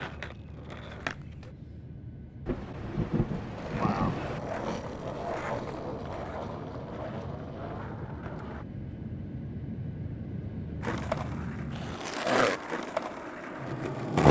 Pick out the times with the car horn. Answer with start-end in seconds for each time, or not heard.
not heard.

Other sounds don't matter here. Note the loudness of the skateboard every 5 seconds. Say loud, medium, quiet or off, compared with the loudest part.
medium, medium, loud.